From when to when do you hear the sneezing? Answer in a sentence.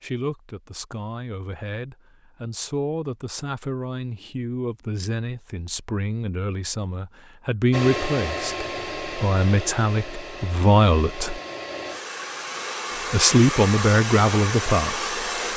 The sneezing can't be heard in this clip.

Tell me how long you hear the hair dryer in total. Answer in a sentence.
You can hear the hair dryer for 8 seconds altogether.